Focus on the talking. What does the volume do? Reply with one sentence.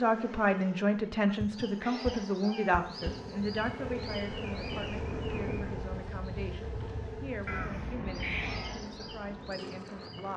The loudness of the talking goes down.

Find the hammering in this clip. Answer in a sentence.
You can't hear the hammering here.